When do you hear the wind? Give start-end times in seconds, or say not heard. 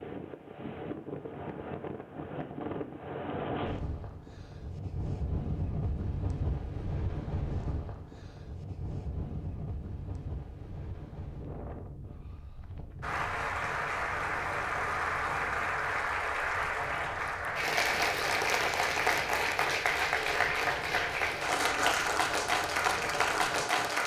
0.0-24.0.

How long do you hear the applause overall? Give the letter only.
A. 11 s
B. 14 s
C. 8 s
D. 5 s
A.